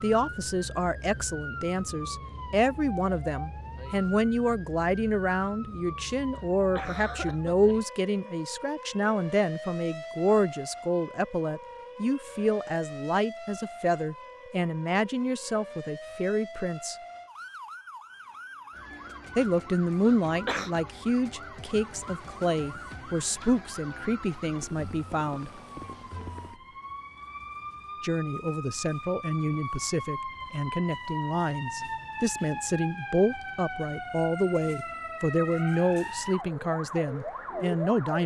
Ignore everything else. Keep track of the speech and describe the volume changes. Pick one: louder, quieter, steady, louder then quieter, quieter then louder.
steady.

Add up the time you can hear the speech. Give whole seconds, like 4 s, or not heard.
33 s.